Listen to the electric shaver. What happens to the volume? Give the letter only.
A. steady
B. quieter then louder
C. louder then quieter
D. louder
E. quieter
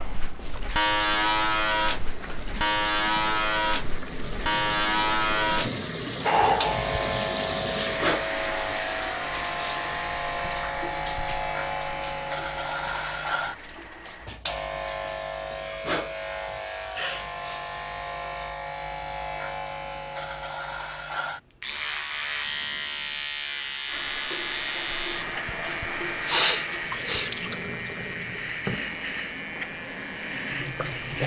E.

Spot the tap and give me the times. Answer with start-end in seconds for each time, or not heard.
0.1-14.3, 23.9-31.2.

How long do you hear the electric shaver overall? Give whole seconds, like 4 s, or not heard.
31 s.